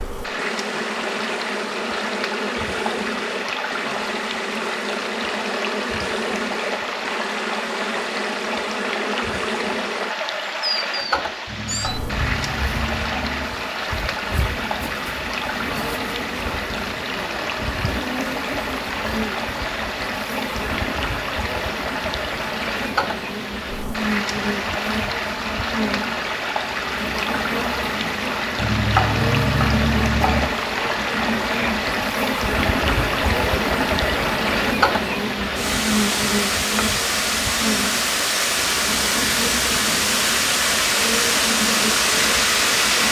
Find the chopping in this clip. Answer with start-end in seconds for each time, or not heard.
11.4-13.5, 28.6-30.6.